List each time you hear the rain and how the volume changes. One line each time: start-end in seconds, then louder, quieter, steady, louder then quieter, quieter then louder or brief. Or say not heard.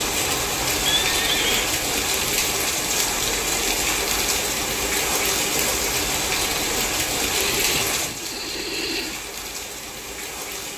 0.0-10.7 quieter.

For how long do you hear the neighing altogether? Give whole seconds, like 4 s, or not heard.
3 s.